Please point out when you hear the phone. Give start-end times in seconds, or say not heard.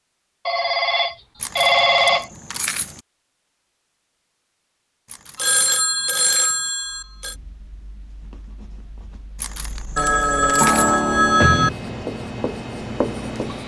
0.5-2.3, 5.3-7.3, 9.9-11.7.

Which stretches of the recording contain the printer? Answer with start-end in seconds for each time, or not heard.
not heard.